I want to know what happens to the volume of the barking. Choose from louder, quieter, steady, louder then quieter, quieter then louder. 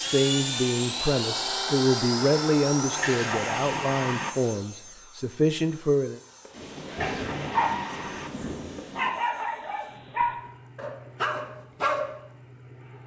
quieter then louder.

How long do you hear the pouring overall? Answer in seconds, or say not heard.
3 s.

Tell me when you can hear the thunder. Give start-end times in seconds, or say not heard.
6.5-9.1.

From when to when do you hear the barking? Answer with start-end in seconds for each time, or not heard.
6.5-12.2.